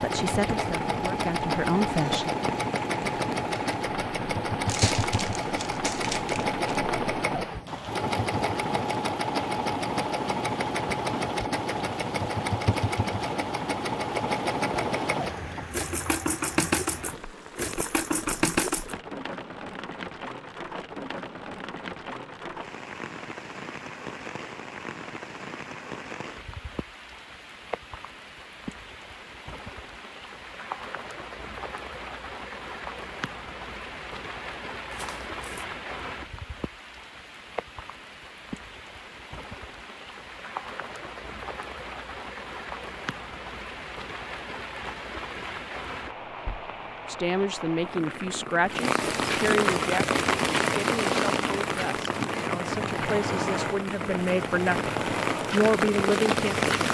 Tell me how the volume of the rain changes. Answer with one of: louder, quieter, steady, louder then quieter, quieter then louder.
louder.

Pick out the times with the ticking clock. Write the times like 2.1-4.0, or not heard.
not heard.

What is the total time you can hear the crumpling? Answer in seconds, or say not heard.
3 s.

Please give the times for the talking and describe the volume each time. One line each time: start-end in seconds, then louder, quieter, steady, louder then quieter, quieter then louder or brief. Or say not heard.
0.0-2.4 brief
47.0-56.7 quieter then louder.